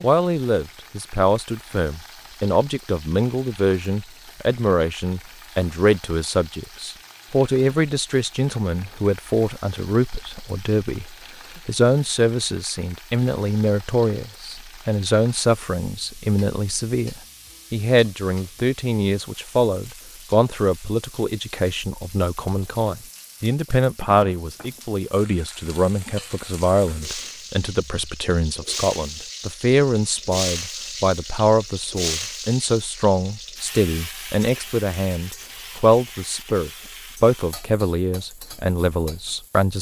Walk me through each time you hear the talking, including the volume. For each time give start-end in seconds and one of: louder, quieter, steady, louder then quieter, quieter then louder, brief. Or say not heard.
0.0-39.7 steady.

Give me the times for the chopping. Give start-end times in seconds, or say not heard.
not heard.